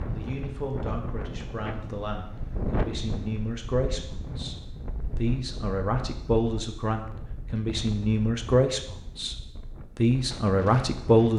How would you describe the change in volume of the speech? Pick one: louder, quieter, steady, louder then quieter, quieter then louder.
louder.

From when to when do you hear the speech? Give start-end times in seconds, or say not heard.
0.1-11.3.